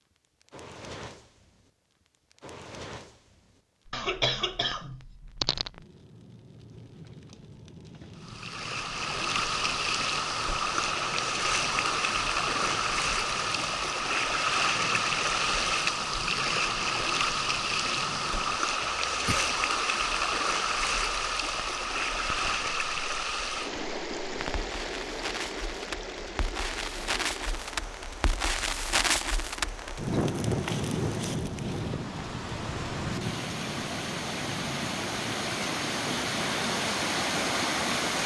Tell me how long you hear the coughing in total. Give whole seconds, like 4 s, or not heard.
3 s.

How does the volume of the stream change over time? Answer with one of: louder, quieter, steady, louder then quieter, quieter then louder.
quieter then louder.